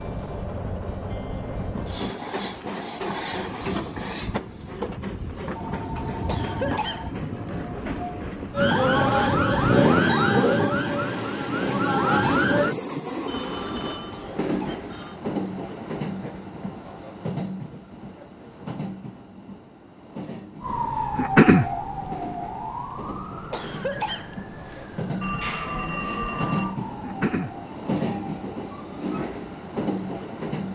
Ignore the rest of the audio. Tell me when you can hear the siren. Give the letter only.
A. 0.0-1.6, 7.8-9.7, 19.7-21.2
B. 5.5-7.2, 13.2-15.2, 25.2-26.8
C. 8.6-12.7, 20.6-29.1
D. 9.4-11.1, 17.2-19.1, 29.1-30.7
C.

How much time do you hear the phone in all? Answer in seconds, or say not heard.
5 s.